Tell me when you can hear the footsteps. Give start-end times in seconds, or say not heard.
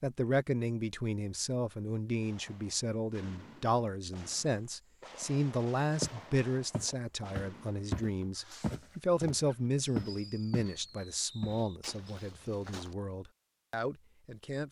6.0-10.8, 11.4-12.9.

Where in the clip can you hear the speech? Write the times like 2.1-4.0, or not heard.
0.0-14.6.